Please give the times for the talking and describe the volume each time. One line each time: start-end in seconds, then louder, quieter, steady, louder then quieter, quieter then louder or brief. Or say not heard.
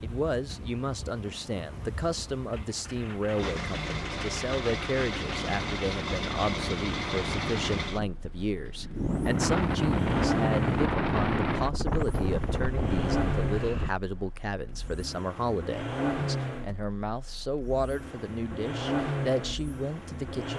0.0-20.5 steady.